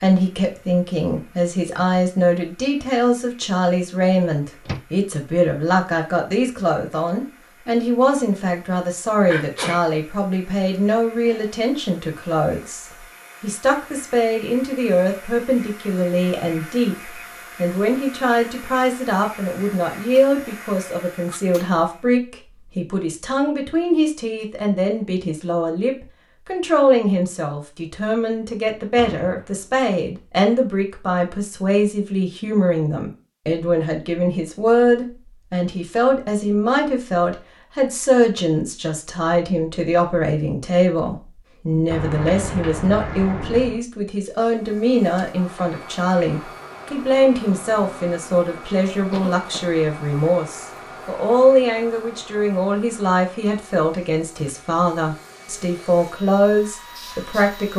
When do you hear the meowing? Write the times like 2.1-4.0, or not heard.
not heard.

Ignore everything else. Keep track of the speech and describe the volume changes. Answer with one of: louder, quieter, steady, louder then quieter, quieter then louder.
steady.